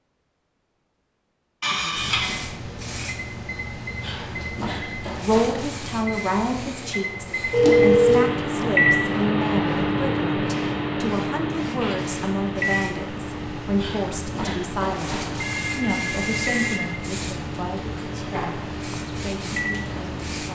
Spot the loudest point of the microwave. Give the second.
9 s.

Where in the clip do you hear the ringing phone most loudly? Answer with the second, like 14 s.
8 s.